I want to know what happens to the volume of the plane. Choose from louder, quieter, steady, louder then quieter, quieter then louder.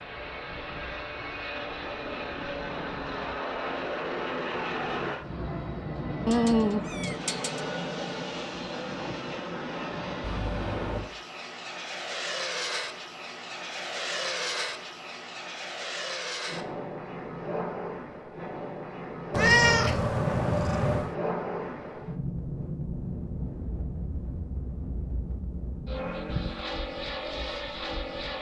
steady.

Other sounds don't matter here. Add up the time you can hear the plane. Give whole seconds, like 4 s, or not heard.
28 s.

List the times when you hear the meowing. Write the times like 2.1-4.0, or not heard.
6.2-7.6, 10.2-11.1, 19.3-21.1.